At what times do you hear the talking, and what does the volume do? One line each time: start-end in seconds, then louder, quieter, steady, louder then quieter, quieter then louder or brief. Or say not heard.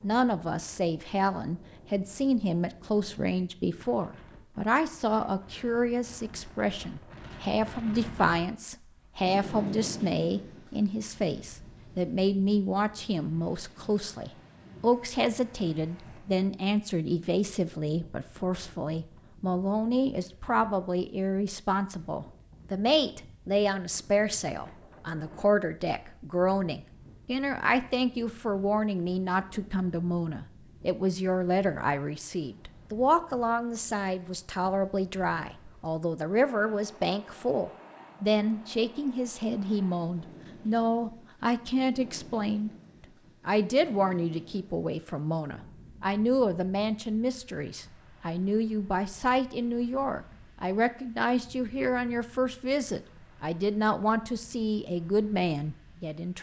0.0-42.7 steady
43.5-56.3 steady.